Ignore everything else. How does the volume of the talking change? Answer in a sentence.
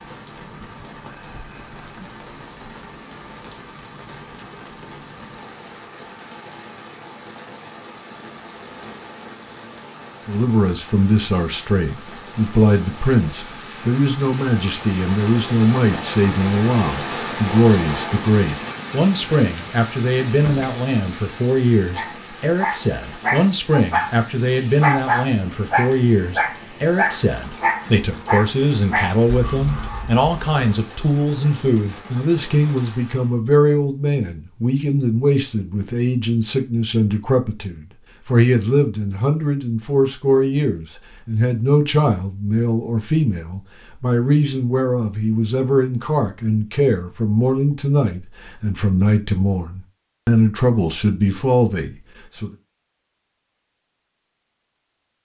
The loudness of the talking stays about the same.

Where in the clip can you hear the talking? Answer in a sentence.
The talking can be heard from 10.2 to 52.5 s.